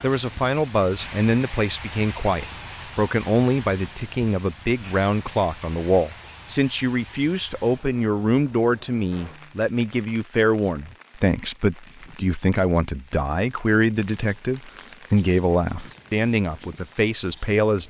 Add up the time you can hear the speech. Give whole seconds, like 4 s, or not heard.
18 s.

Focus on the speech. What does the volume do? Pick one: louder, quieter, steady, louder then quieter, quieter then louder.
steady.